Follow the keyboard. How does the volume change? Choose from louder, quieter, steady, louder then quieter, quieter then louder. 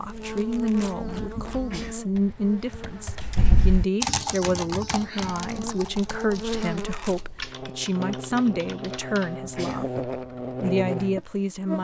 louder then quieter.